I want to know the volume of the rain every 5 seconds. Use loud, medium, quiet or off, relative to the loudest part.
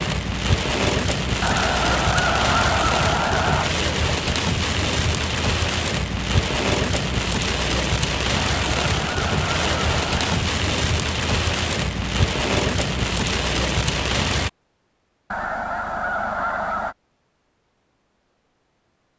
loud, loud, loud, off.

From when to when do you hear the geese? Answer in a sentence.
The geese can be heard from 1.4 to 3.7 s, from 8.3 to 10.4 s and from 15.3 to 16.9 s.